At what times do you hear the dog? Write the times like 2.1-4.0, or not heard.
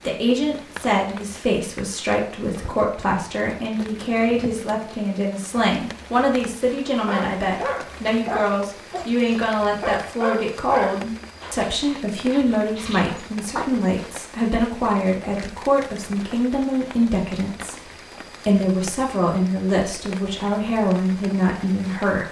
7.0-13.8.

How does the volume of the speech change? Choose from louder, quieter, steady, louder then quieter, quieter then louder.
steady.